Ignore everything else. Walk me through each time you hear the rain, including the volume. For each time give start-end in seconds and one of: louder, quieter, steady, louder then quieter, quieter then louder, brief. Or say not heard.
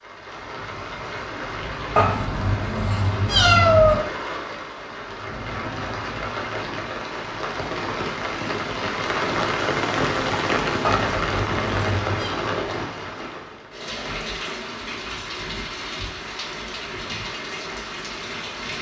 0.0-18.7 louder then quieter.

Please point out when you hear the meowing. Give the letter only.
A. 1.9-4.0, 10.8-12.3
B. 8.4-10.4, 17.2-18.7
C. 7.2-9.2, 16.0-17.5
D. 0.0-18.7
A.